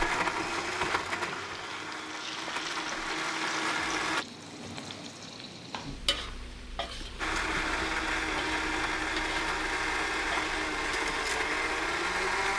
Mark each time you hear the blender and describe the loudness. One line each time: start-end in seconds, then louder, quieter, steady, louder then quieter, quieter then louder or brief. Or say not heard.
0.0-4.2 quieter then louder
7.2-12.5 steady.